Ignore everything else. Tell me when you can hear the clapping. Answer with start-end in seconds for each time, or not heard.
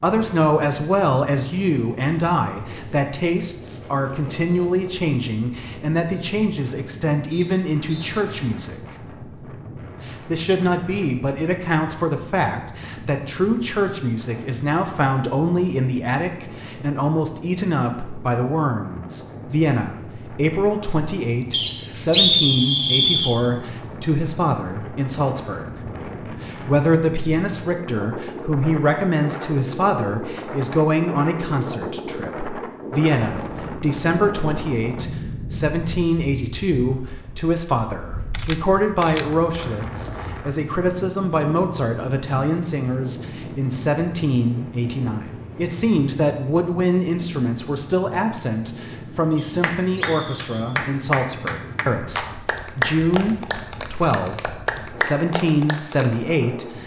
49.6-56.1.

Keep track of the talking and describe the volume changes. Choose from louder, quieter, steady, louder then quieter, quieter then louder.
steady.